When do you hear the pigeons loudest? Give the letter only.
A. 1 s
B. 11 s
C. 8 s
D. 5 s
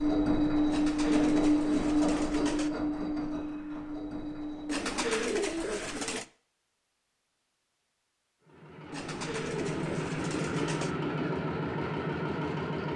D.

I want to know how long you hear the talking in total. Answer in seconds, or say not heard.
not heard.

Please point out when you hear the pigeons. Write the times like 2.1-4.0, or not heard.
0.7-2.7, 4.7-6.2, 8.9-10.9.